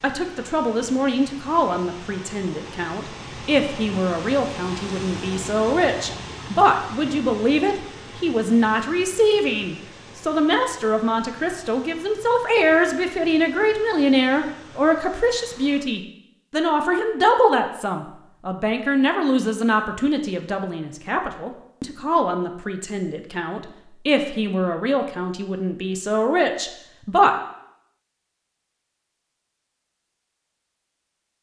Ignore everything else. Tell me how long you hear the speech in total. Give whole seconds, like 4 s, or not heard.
27 s.